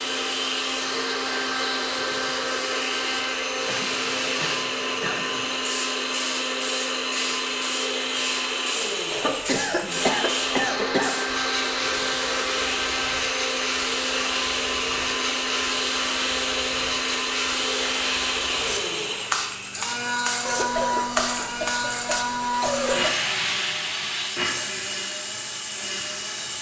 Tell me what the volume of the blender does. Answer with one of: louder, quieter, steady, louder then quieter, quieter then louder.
steady.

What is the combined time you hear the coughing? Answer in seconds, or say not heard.
6 s.